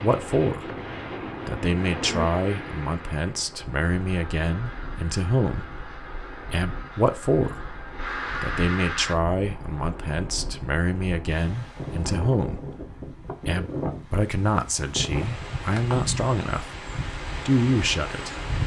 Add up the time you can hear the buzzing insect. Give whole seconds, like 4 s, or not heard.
2 s.